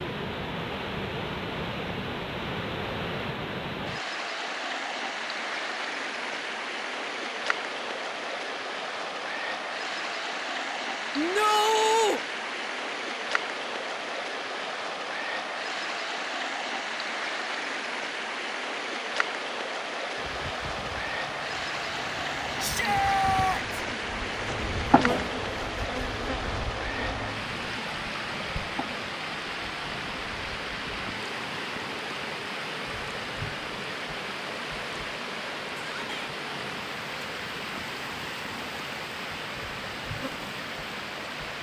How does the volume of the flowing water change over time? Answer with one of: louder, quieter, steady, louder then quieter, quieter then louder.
steady.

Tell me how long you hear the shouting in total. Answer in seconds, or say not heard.
3 s.